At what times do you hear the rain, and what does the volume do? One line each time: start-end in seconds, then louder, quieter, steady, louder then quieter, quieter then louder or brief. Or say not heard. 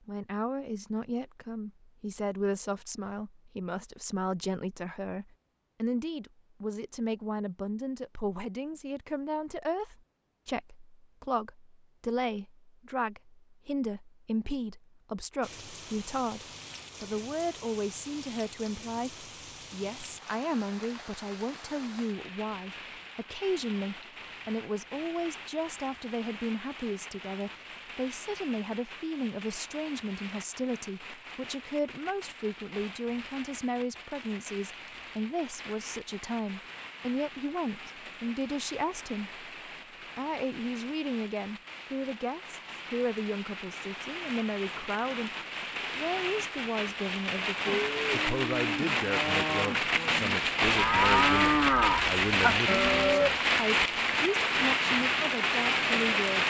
15.4-56.4 louder.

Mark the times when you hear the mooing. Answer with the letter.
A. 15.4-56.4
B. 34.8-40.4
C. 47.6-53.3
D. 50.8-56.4
C.